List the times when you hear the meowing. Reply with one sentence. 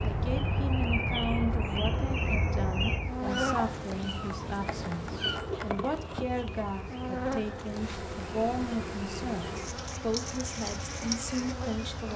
You can hear the meowing from 3.2 to 5.4 s.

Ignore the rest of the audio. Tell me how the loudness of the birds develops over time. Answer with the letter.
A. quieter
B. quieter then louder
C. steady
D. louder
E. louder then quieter
A.